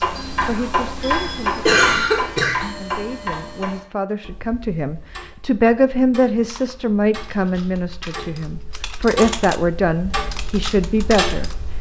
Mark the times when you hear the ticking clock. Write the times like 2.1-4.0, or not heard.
0.0-11.7.